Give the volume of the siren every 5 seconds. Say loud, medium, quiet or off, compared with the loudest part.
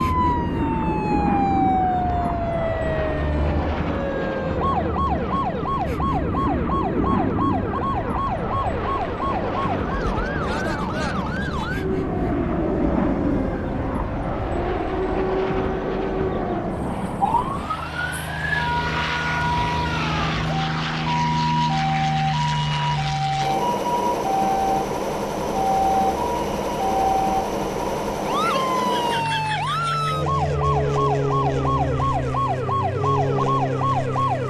loud, loud, medium, loud, loud, loud, loud.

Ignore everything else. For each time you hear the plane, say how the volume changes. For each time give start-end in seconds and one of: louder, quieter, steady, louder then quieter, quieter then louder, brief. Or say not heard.
0.0-34.4 steady.